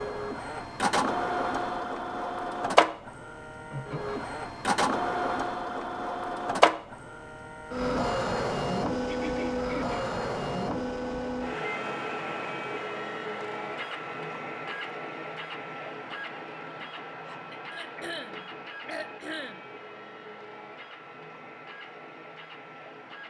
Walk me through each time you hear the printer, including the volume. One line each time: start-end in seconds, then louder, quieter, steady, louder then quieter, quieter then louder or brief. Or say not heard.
0.0-23.2 quieter.